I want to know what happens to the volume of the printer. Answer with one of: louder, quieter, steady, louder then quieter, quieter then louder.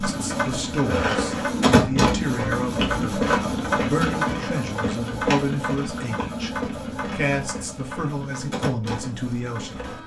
quieter.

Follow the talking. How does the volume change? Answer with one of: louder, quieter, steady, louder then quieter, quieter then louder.
steady.